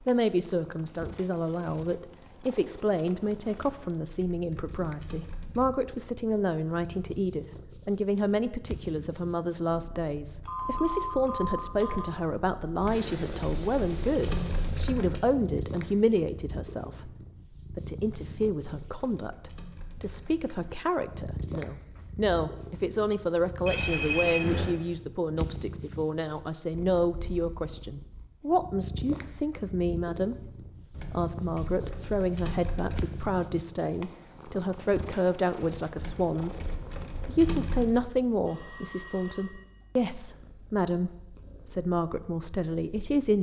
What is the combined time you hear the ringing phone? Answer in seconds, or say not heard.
4 s.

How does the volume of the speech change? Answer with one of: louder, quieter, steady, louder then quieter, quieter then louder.
steady.